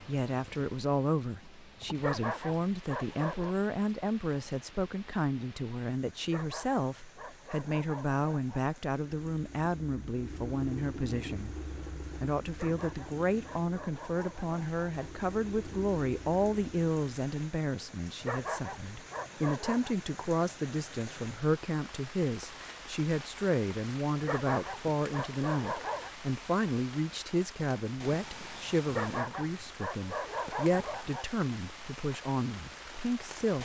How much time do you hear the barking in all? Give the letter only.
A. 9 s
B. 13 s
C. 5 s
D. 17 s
B.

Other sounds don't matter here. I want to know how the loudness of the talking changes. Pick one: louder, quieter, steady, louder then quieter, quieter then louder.
steady.